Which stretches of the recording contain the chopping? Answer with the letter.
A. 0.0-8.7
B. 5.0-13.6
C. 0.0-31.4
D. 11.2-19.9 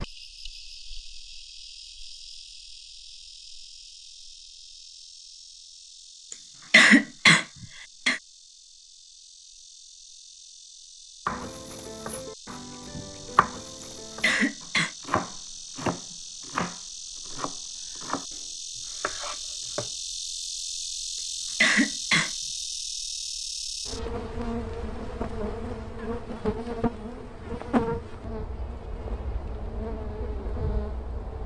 D.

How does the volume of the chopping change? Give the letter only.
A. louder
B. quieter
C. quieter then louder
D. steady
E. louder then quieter
E.